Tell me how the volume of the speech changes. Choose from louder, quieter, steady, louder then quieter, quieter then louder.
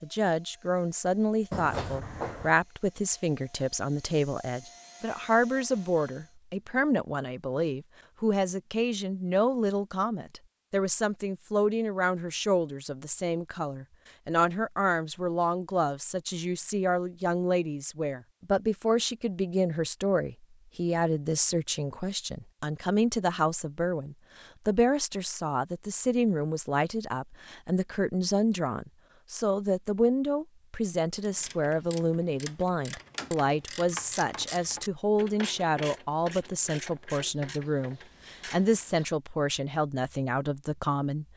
steady.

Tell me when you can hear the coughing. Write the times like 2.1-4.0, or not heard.
1.5-2.5.